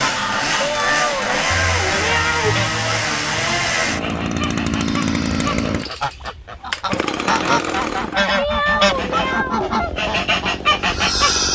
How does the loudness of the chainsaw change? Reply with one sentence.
The loudness of the chainsaw goes down.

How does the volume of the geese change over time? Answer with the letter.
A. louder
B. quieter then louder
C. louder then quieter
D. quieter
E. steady
A.